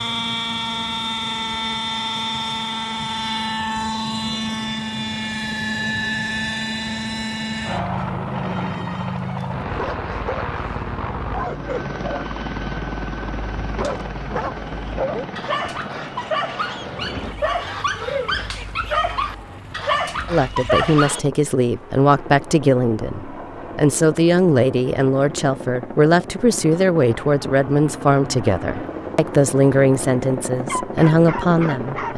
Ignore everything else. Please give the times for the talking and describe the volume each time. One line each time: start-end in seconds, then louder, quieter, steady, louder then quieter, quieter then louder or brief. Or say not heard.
20.3-32.1 steady.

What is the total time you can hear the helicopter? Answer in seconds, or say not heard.
32 s.